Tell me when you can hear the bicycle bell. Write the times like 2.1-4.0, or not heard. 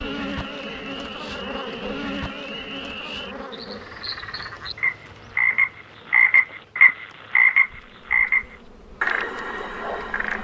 not heard.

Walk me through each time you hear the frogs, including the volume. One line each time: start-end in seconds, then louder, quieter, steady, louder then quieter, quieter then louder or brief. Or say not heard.
0.0-10.3 louder then quieter.